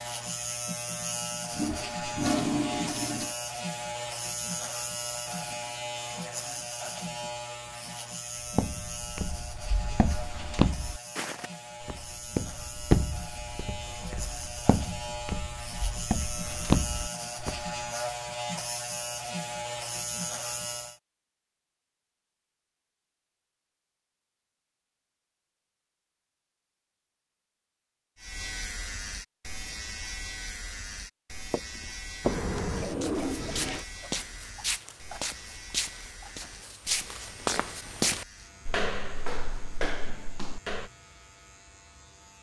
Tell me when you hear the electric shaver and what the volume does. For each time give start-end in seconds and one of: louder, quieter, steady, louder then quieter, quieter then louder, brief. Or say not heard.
0.0-21.0 quieter then louder
28.1-42.3 quieter.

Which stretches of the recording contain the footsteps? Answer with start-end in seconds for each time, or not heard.
8.3-17.8, 31.5-40.9.